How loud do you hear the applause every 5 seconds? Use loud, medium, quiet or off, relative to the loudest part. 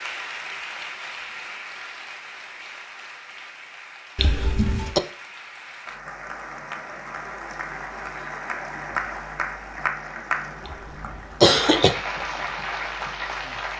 medium, loud, loud.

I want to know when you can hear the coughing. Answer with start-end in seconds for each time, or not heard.
4.2-5.0, 10.7-11.9.